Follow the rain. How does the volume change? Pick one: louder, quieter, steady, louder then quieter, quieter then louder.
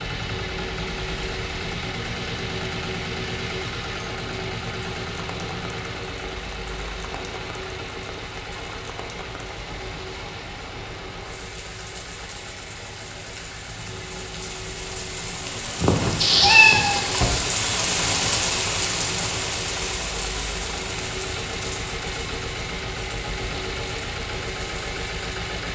louder then quieter.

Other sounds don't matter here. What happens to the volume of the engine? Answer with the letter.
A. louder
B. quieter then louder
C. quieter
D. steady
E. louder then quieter
B.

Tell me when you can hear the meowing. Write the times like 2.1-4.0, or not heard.
15.8-17.4.